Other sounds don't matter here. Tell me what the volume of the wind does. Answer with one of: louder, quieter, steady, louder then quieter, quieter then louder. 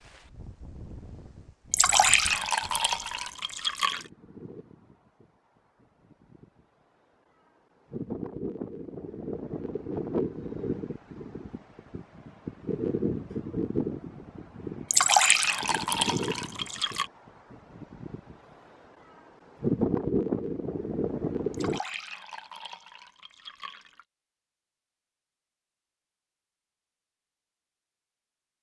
louder.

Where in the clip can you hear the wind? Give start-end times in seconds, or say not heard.
0.0-21.8.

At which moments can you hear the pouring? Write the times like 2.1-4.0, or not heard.
1.7-4.0, 14.9-17.1, 21.5-24.1.